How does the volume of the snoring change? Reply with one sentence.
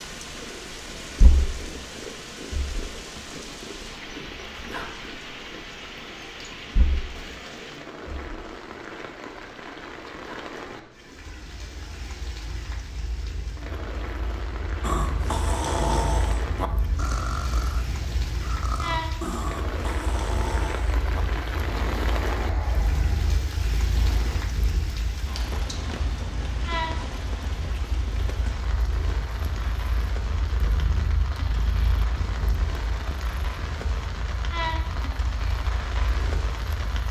The loudness of the snoring goes down.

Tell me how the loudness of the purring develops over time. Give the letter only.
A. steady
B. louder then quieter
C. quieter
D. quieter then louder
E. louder
D.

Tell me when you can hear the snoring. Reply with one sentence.
You can hear the snoring from 14.8 to 24.4 s.